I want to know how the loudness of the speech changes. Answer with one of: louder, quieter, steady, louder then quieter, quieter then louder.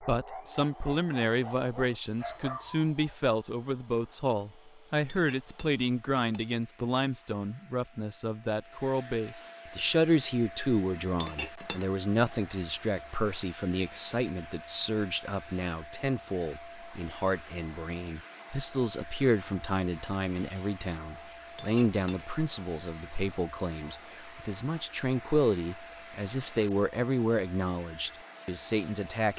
steady.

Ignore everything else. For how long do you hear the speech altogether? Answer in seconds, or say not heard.
29 s.